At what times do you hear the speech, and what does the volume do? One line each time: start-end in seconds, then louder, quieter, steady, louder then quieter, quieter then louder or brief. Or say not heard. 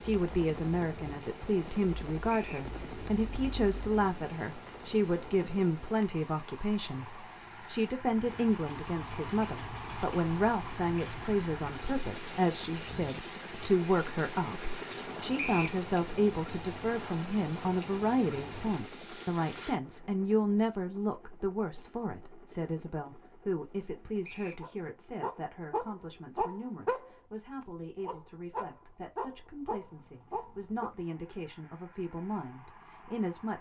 0.0-33.5 quieter.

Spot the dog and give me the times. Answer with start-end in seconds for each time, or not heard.
24.6-27.1, 28.0-30.9.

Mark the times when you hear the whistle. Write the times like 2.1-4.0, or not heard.
2.2-2.7, 15.3-15.8, 24.2-24.6.